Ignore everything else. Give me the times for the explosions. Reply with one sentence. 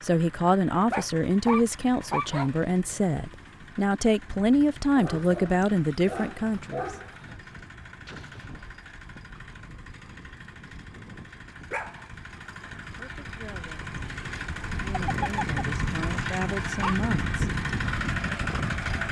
The explosions can be heard from 8.1 to 8.9 s.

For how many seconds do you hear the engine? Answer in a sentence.
The engine can be heard for 19 seconds in total.